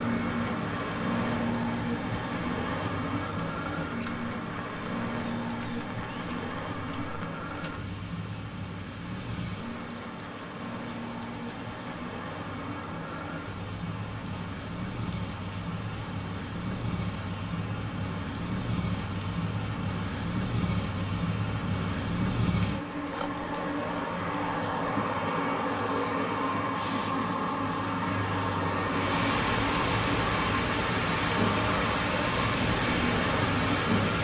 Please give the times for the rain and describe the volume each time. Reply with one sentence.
The rain can be heard from 0.0 to 34.1 s, getting louder.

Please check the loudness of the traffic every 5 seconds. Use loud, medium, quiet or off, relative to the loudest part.
loud, medium, medium, medium, loud, loud, loud.